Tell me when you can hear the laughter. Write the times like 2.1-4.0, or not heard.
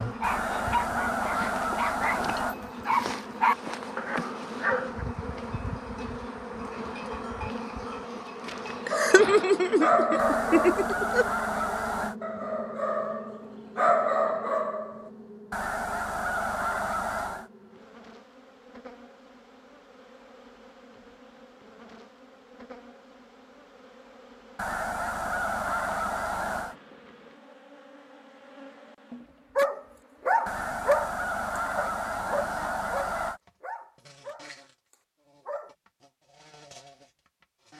8.8-11.2.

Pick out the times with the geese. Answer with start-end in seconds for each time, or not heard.
0.2-2.5, 10.2-12.2, 15.5-17.5, 24.6-26.8, 30.4-33.4.